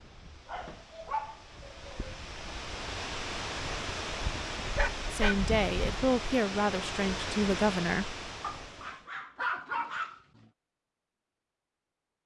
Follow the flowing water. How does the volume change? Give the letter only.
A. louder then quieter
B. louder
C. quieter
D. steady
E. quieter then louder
B.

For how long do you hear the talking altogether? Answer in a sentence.
You can hear the talking for 3 seconds altogether.